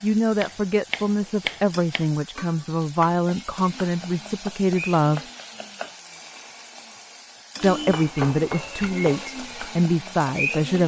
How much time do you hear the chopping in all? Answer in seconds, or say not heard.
3 s.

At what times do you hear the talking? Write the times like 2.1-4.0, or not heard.
0.0-5.2, 7.6-10.8.